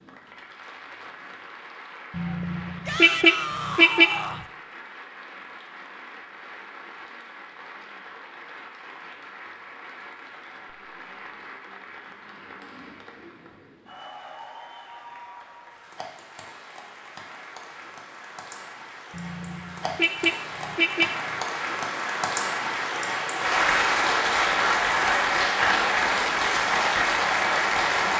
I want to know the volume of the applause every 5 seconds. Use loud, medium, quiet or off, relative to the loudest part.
quiet, quiet, quiet, quiet, loud, loud.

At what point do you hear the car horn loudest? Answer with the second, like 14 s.
4 s.